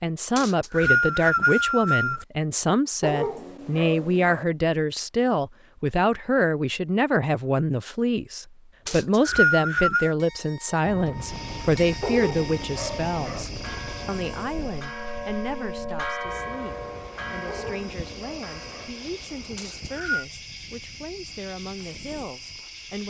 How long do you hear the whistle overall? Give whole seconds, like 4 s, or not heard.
4 s.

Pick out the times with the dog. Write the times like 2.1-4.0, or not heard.
3.0-4.5, 12.0-13.4, 17.4-18.9.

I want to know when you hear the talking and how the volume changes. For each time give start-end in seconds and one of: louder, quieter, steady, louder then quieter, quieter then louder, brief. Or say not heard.
0.0-23.0 quieter.